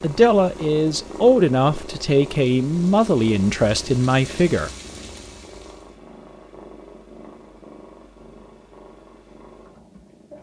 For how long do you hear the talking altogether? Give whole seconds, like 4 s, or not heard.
5 s.